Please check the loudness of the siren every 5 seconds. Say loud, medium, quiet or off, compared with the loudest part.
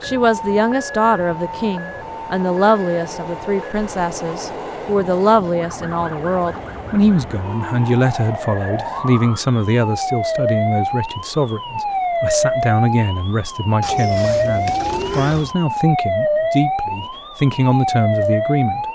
medium, medium, loud, loud.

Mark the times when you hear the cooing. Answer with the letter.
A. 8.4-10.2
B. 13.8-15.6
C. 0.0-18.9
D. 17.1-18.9
B.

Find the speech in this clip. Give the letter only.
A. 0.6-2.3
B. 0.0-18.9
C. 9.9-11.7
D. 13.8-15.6
B.